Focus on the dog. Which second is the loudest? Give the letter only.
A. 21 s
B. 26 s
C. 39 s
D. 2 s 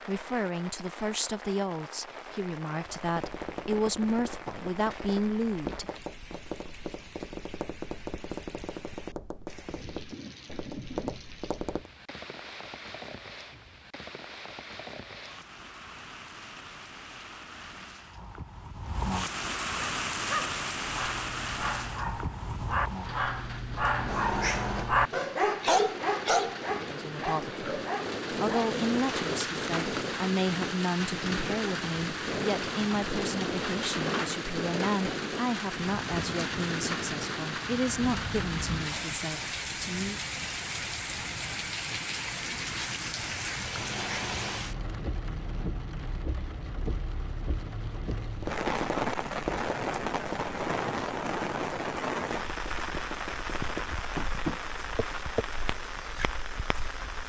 B.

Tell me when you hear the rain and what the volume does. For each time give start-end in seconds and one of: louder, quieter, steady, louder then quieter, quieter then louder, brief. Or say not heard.
0.0-57.2 louder.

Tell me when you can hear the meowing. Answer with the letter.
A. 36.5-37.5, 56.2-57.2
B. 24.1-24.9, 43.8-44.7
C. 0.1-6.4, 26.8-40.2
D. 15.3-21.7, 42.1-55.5
B.